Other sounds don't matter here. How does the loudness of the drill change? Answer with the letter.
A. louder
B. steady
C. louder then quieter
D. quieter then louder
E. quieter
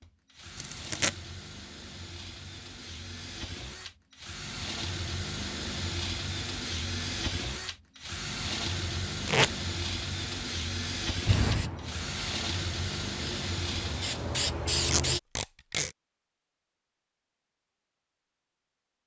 A.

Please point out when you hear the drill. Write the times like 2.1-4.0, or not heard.
0.0-14.4.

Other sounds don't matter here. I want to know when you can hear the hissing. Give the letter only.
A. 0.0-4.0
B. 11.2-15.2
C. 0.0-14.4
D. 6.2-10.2
B.